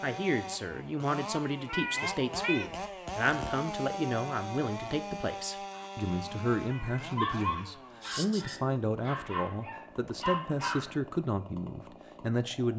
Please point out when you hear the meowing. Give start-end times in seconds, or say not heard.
1.6-2.7, 6.7-8.6.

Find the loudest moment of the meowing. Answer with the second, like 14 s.
2 s.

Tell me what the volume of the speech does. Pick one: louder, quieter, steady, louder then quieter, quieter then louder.
steady.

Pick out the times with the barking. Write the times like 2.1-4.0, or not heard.
5.8-10.9.